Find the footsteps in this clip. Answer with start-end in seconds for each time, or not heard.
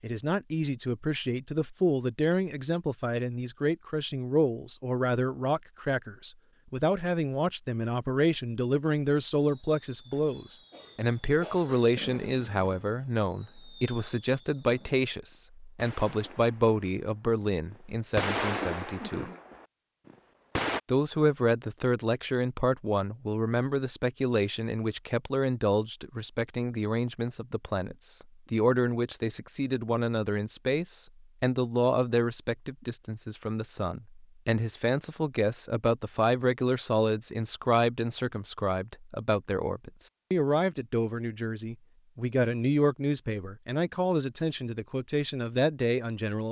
not heard.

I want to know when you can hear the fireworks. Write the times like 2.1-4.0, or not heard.
9.3-20.8.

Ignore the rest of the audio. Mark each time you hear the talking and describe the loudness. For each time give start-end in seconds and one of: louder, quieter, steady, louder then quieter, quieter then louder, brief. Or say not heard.
0.0-19.3 steady
20.9-46.4 steady.